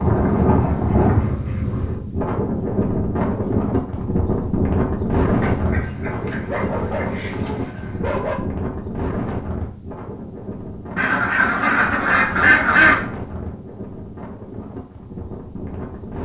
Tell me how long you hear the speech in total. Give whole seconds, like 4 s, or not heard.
not heard.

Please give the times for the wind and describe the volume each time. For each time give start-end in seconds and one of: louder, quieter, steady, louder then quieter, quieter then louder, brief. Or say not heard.
0.0-16.2 quieter.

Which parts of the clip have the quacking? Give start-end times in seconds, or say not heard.
0.3-1.9, 5.4-8.1, 10.9-12.9.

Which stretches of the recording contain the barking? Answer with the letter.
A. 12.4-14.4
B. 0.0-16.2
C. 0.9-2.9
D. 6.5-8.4
D.